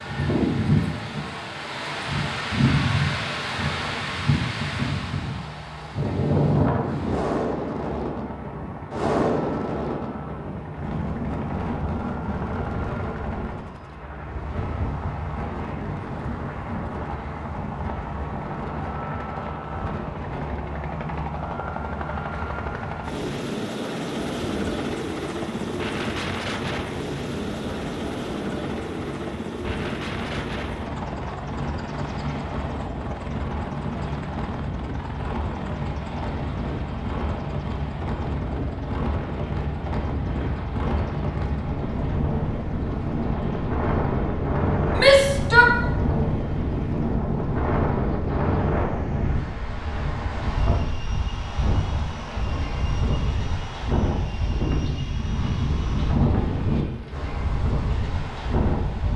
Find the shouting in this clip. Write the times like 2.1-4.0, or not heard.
45.0-45.7.